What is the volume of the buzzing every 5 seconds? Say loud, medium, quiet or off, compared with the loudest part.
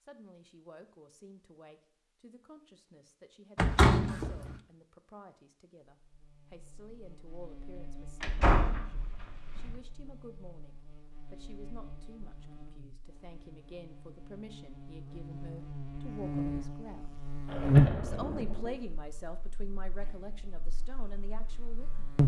off, quiet, quiet, loud, medium.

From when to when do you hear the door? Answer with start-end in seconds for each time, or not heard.
3.5-4.5, 8.2-9.8, 17.4-18.8.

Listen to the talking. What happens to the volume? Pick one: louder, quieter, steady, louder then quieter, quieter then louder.
louder.